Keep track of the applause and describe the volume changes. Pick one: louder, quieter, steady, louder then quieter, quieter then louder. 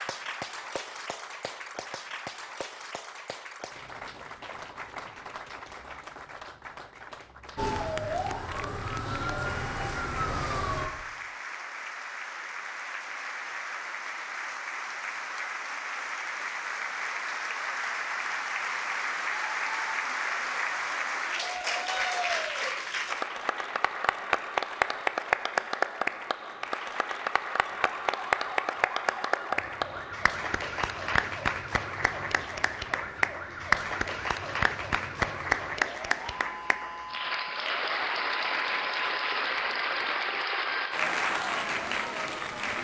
louder.